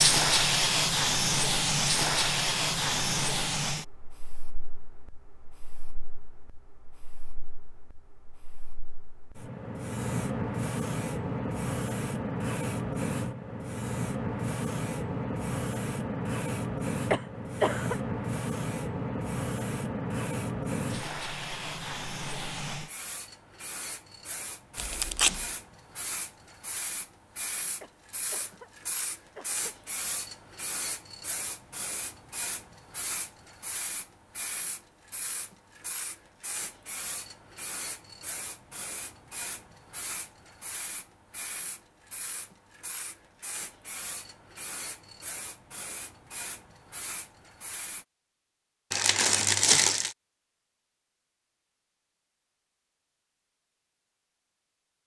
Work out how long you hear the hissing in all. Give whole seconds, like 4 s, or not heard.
48 s.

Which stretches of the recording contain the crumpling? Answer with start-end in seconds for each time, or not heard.
24.8-25.5, 48.9-50.1.